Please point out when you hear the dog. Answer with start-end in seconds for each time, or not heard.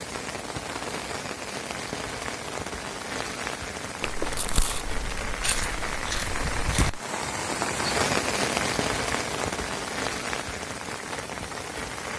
not heard.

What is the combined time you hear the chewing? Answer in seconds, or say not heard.
3 s.